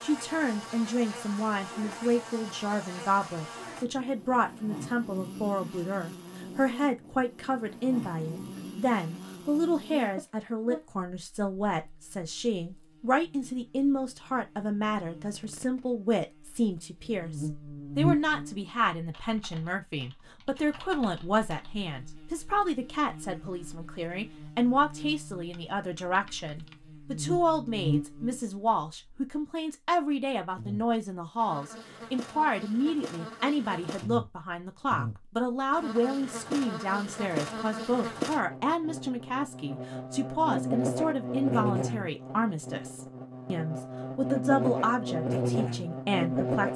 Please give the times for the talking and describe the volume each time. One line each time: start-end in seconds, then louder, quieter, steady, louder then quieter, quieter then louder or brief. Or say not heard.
0.0-46.7 steady.